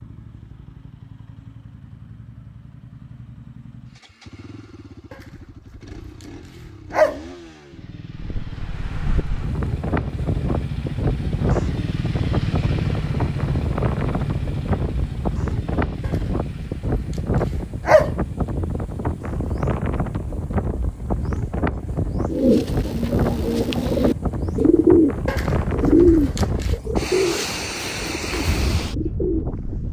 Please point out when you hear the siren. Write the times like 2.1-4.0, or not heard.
not heard.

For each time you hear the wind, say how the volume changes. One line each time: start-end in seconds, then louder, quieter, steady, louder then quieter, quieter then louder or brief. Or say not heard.
8.2-29.8 steady.